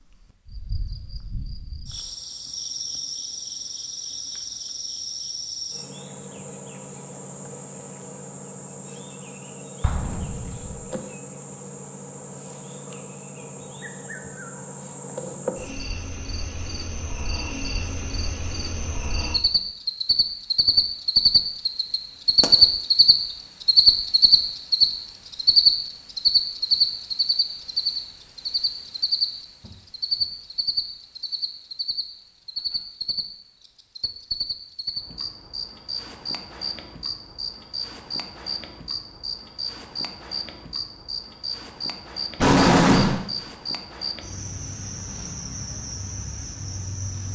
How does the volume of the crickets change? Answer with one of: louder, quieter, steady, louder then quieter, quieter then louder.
louder then quieter.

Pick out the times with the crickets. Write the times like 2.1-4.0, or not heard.
0.0-47.3.